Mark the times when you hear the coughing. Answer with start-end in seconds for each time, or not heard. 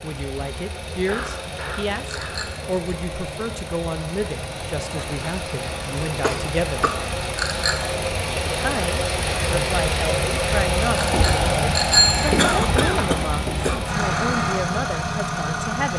1.1-2.4, 6.2-7.0, 12.3-13.8.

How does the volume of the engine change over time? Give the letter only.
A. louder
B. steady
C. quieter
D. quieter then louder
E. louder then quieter
A.